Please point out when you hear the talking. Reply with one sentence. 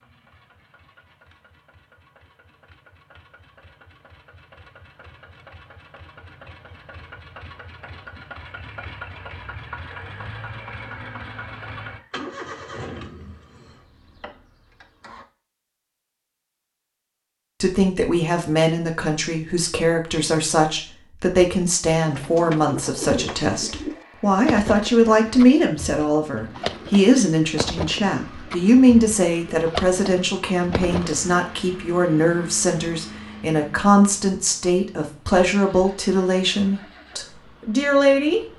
You can hear the talking from 17.6 to 38.4 s.